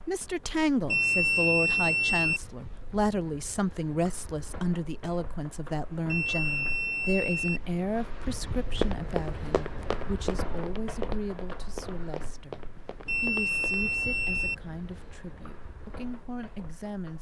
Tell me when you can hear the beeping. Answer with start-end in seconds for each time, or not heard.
0.8-2.4, 6.0-7.6, 13.1-14.6.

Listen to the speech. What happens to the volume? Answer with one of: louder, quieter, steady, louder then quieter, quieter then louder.
quieter.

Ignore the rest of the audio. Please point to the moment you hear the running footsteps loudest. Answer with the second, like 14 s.
9 s.